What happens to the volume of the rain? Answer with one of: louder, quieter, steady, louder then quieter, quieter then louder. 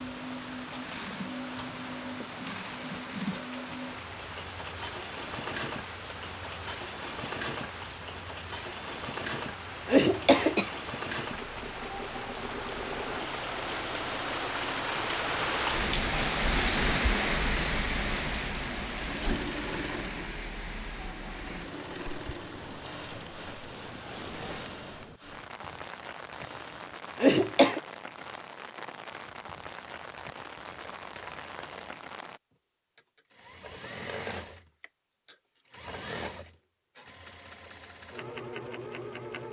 louder then quieter.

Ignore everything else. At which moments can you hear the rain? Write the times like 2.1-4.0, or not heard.
0.0-32.4.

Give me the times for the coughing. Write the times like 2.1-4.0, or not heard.
9.8-10.7, 27.2-27.8.